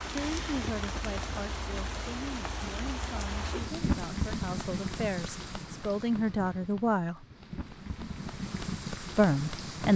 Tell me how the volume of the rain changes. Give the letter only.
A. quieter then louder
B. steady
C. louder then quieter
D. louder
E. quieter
A.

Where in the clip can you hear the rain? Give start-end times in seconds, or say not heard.
0.0-9.9.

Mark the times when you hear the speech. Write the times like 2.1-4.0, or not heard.
0.1-7.2, 9.2-9.9.